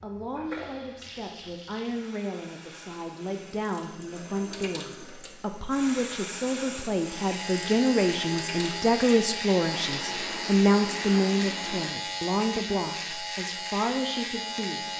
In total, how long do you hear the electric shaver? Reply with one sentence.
The electric shaver can be heard for 8 seconds in total.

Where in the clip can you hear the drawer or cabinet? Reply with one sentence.
You can't hear the drawer or cabinet here.